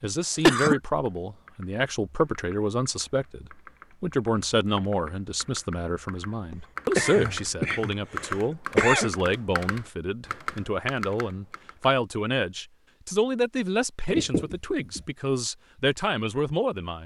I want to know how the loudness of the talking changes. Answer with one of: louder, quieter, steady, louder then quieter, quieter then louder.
steady.